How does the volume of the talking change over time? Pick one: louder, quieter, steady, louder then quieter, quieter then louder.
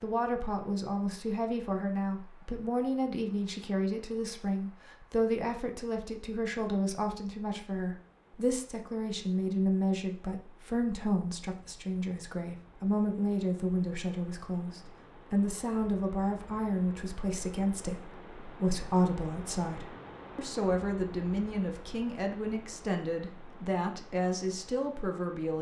steady.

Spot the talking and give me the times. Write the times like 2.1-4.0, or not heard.
0.0-25.5.